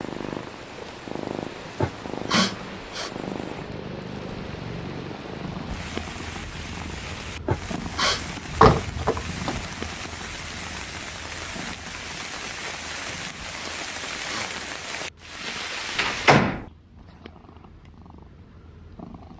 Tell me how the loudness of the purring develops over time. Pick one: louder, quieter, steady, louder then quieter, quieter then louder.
quieter.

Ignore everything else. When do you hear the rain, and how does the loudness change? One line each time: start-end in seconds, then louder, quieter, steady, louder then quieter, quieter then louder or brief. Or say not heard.
0.0-16.4 louder.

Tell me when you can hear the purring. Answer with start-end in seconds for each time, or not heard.
0.0-19.3.